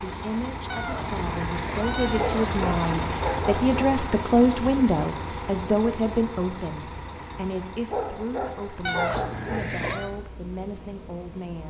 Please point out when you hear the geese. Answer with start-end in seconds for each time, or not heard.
not heard.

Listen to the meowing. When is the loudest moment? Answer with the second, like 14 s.
9 s.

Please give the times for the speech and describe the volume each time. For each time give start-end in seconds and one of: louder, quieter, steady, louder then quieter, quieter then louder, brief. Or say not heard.
0.0-11.6 louder then quieter.